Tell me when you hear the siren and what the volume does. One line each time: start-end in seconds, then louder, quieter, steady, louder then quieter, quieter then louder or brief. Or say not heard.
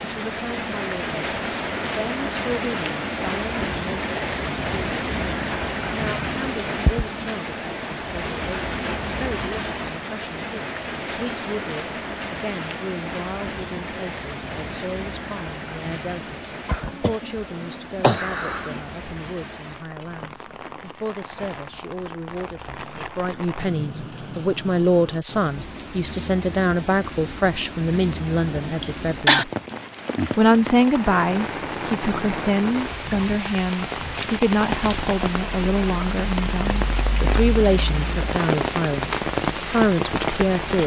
not heard.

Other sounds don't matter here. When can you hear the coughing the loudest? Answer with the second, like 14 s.
29 s.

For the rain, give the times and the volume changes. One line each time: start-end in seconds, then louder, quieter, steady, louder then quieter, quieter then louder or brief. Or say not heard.
0.0-40.8 quieter then louder.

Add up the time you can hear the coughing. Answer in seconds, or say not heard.
3 s.